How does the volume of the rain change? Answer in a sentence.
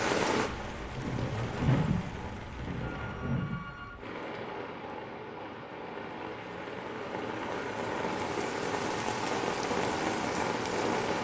The volume of the rain goes down, then up.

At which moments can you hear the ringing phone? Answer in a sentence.
You can hear the ringing phone from 2.9 to 4.0 s.